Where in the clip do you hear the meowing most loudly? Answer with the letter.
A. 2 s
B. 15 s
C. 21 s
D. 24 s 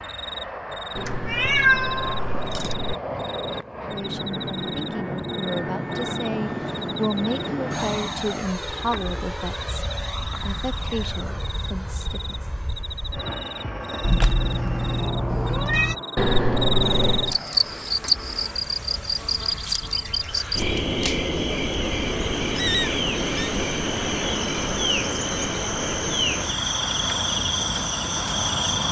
A.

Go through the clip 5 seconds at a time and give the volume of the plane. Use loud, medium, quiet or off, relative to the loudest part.
loud, loud, medium, medium, medium, loud.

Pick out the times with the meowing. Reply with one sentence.
You can hear the meowing from 1.1 to 2.8 s, from 14.0 to 15.9 s and from 22.6 to 23.5 s.